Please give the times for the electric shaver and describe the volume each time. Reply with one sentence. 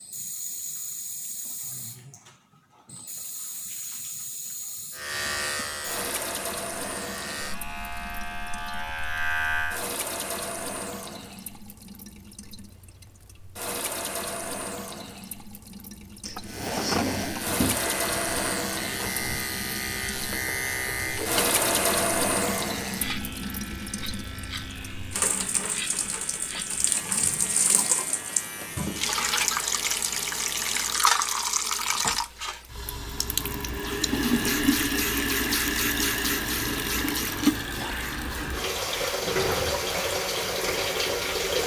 You can hear the electric shaver from 4.9 to 9.8 s, getting quieter then louder; and from 16.4 to 30.9 s, getting quieter.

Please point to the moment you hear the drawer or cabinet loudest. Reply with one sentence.
The volume of the drawer or cabinet peaks at 17 seconds.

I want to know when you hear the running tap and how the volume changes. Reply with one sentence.
You can hear the running tap from 0.0 to 41.6 s, getting louder.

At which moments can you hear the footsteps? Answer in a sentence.
The footsteps can't be heard in this clip.